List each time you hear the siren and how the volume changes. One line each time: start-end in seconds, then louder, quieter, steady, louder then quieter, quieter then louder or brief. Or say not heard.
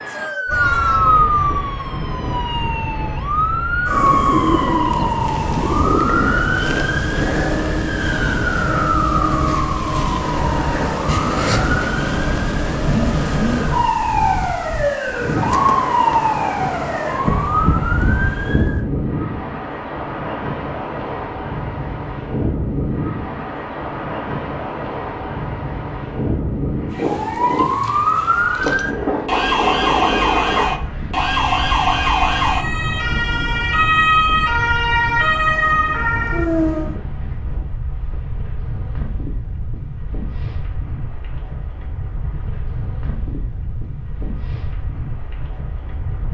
0.0-18.9 steady
26.9-37.0 steady.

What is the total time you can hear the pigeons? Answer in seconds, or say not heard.
3 s.